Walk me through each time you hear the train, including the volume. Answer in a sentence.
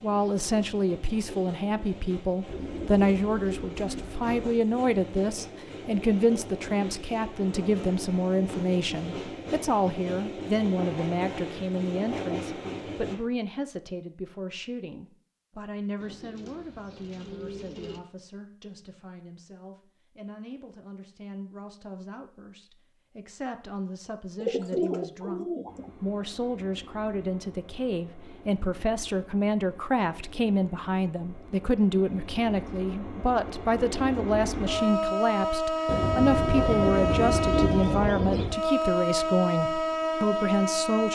The train can be heard from 0.0 to 13.2 s, getting louder; and from 25.6 to 41.0 s, getting louder.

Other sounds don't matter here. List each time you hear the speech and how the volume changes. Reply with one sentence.
You can hear the speech from 0.0 to 41.0 s, getting quieter then louder.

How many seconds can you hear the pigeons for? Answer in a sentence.
The pigeons can be heard for 8 seconds in total.